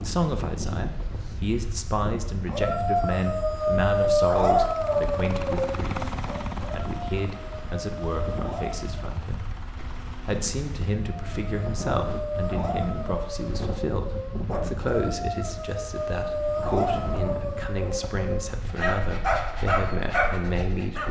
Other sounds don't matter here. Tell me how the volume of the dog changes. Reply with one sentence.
The loudness of the dog goes down, then up.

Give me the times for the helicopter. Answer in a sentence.
You can hear the helicopter from 4.5 to 11.0 s.